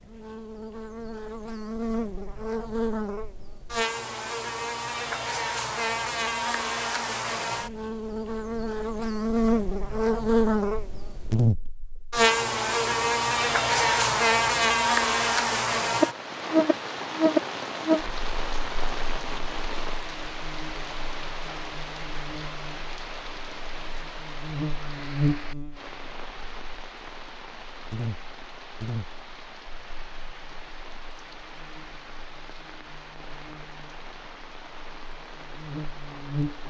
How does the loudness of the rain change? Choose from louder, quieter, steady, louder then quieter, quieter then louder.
quieter.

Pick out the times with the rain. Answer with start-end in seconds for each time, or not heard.
15.9-36.6.